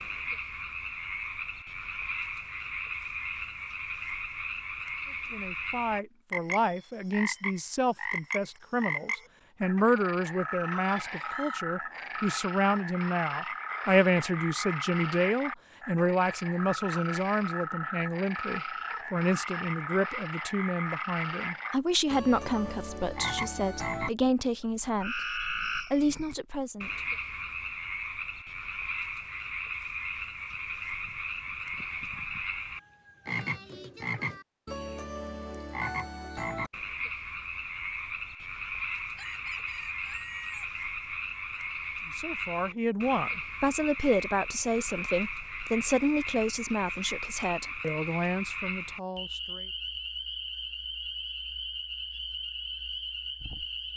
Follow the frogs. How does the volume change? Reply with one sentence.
The loudness of the frogs stays about the same.